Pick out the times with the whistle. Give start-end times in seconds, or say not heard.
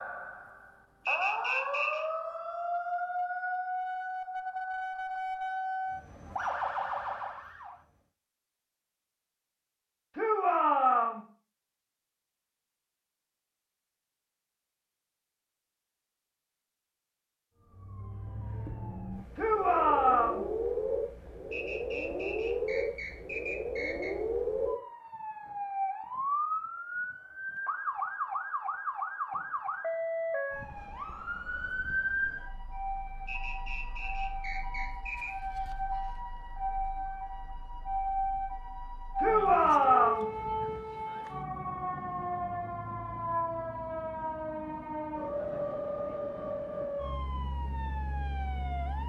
1.1-2.0, 21.5-24.2, 33.2-35.4.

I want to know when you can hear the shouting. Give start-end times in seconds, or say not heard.
10.2-11.2, 19.4-20.4, 39.1-40.2.